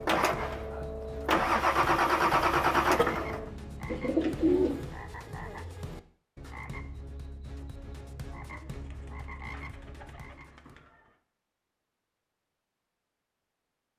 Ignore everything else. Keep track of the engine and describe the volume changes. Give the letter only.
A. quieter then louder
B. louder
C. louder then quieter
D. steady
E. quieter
C.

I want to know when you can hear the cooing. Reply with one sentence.
The cooing can be heard from 3.9 to 4.8 s and from 8.4 to 10.9 s.